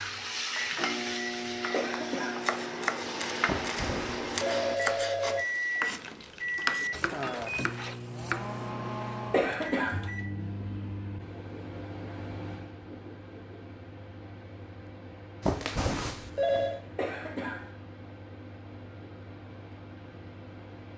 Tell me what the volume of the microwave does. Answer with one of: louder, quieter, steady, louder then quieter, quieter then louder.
quieter.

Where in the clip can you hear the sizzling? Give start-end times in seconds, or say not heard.
0.0-8.1.